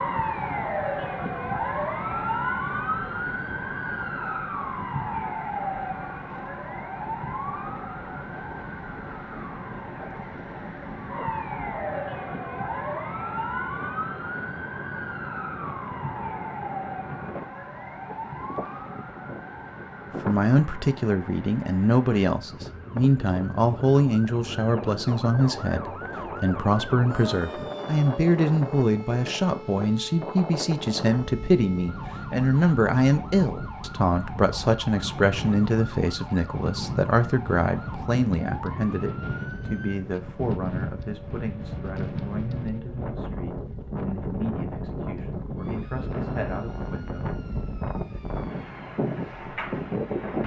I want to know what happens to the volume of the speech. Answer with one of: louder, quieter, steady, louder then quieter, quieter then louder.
quieter.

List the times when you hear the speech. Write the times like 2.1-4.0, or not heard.
20.2-47.3.